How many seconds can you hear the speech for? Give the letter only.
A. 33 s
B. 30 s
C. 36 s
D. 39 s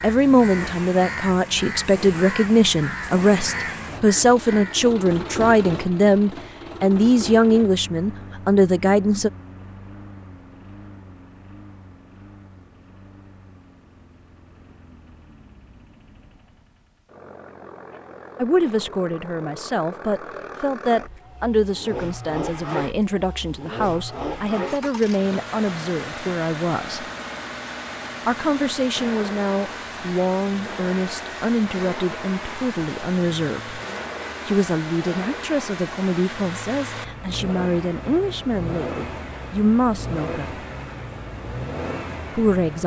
B.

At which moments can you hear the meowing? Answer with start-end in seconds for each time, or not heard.
not heard.